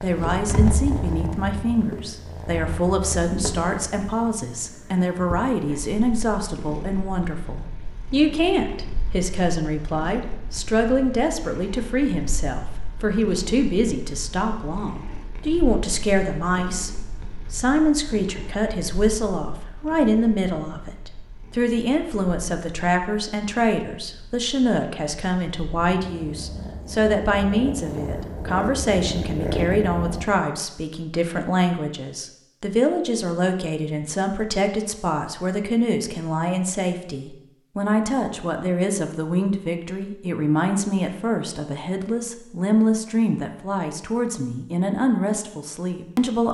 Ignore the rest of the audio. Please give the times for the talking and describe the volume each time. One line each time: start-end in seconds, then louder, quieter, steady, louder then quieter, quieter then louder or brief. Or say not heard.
0.0-16.9 steady
17.5-46.5 steady.